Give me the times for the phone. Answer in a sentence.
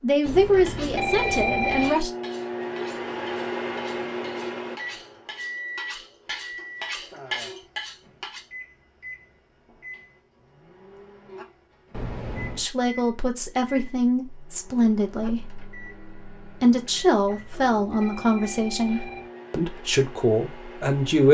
You can hear the phone from 0.2 to 2.0 s, from 11.9 to 12.7 s and from 17.2 to 19.3 s.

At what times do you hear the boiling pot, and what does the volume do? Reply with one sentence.
The boiling pot can't be heard in this clip.